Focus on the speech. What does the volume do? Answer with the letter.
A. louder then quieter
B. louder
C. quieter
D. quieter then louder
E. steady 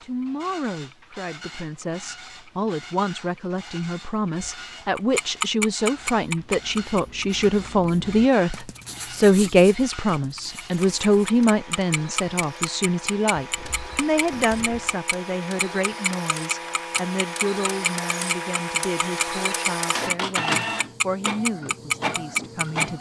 A.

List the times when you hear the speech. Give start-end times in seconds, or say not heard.
0.0-22.9.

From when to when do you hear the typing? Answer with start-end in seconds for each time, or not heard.
not heard.